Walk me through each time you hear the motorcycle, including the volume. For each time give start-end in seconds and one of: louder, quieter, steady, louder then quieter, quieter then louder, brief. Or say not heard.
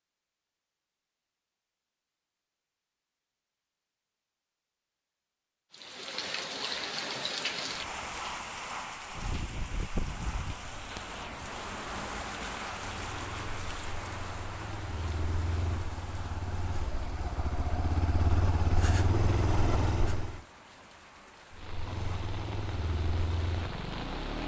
12.8-20.4 louder
21.5-24.4 brief.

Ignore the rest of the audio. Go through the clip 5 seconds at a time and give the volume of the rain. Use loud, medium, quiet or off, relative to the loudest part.
off, loud, loud, medium, medium.